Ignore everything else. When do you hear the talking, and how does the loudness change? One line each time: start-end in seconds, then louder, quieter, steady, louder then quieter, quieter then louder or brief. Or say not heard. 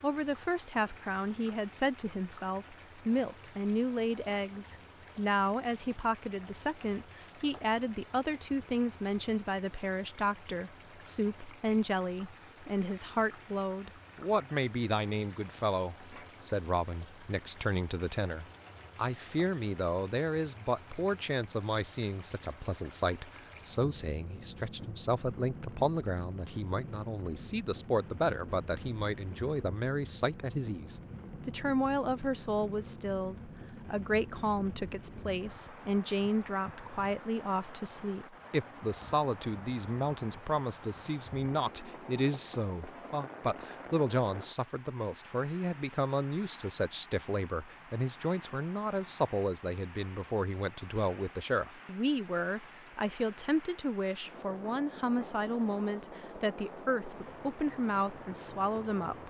0.0-59.2 steady.